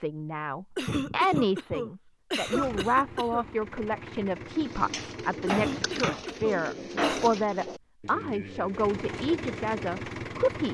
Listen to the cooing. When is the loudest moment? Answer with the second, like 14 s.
7 s.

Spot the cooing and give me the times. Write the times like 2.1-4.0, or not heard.
4.5-9.7.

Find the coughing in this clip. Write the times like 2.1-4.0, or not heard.
0.8-3.5, 5.5-7.3.